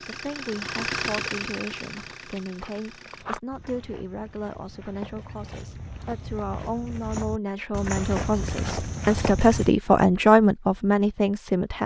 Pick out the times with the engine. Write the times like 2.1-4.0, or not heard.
0.0-3.2.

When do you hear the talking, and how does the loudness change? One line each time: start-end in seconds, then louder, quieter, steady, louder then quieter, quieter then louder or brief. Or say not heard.
0.0-11.8 louder.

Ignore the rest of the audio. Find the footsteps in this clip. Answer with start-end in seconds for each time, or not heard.
1.9-9.7.